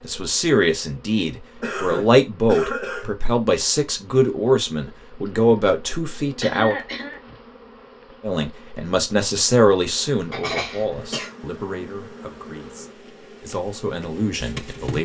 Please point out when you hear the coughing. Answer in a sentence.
You can hear the coughing from 1.6 to 3.3 s, from 6.4 to 7.2 s and from 10.3 to 11.3 s.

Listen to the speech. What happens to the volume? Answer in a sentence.
The volume of the speech goes down.